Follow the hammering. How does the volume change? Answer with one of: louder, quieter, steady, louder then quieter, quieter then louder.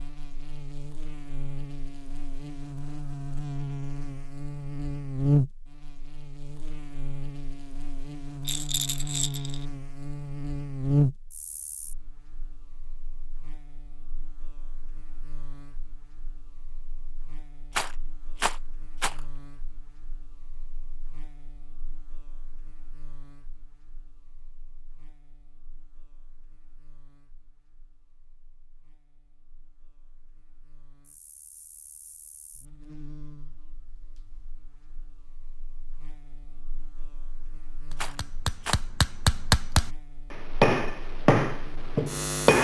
louder then quieter.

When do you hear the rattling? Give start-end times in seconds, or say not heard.
8.4-9.7, 17.7-19.2, 38.0-38.8.